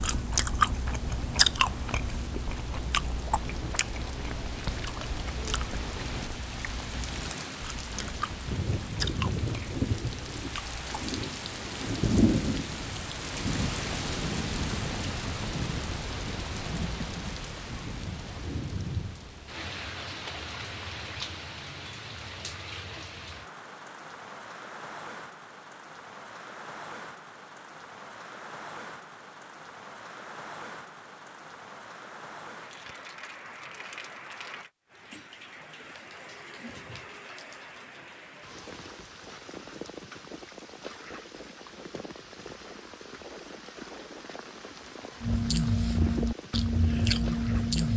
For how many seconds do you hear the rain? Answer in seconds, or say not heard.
48 s.